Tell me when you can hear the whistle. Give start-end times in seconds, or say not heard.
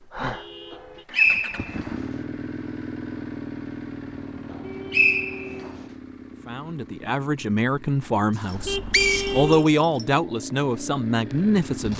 0.7-1.9, 4.5-5.7, 8.5-10.1.